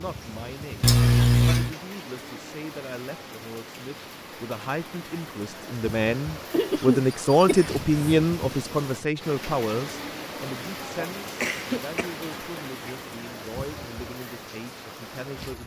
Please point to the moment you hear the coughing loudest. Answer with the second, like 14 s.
1 s.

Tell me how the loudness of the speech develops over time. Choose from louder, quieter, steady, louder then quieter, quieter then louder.
louder then quieter.